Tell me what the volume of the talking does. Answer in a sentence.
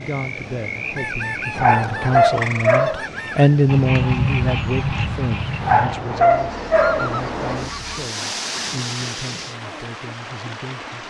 The volume of the talking goes up, then down.